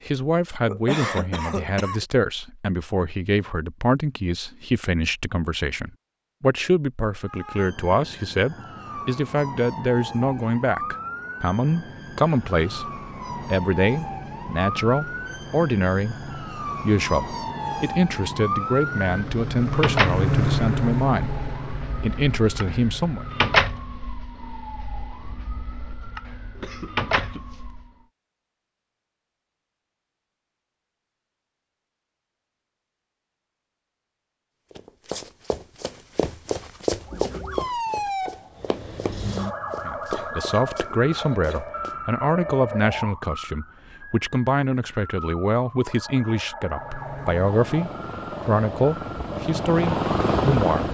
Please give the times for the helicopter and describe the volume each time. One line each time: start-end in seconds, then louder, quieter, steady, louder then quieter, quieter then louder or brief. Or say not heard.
11.8-24.1 louder then quieter
46.6-50.9 louder.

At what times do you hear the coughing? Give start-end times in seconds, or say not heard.
0.7-2.0, 26.6-27.7, 40.1-41.7.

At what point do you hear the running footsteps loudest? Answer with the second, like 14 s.
37 s.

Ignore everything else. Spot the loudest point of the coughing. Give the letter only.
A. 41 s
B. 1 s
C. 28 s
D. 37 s
B.